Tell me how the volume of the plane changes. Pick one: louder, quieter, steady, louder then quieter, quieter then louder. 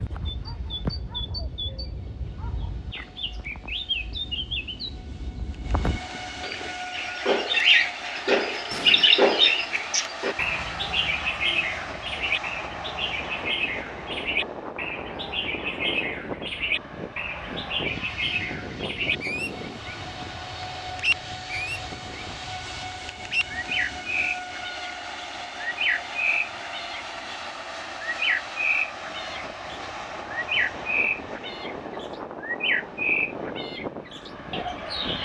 louder.